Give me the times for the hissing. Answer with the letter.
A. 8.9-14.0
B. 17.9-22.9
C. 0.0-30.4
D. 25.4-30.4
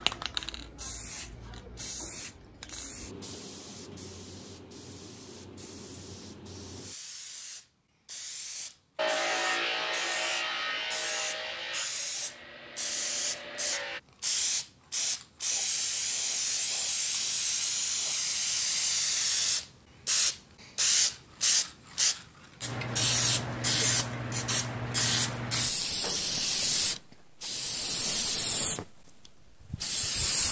C.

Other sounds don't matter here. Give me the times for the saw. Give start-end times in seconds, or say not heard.
8.9-14.0.